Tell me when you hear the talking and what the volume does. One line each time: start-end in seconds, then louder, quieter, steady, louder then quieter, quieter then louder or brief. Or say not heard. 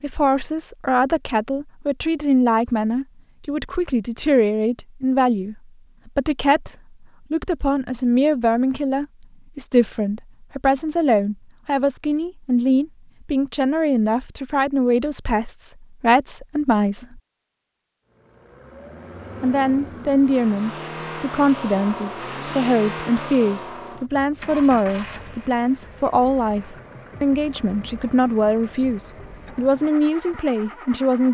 0.0-17.2 steady
19.4-31.2 steady.